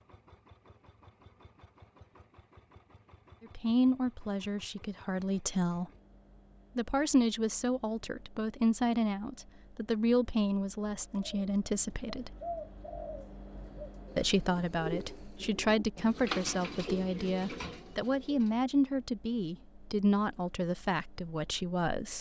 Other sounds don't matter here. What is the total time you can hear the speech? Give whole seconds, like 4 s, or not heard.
16 s.